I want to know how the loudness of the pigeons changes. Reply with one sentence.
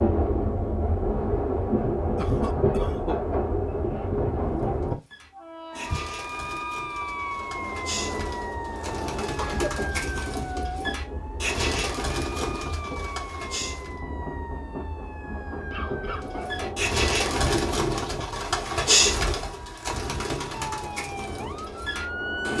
The volume of the pigeons goes up, then down.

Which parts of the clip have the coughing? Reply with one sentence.
You can hear the coughing from 2.1 to 3.2 s, from 9.2 to 9.8 s and from 15.7 to 16.6 s.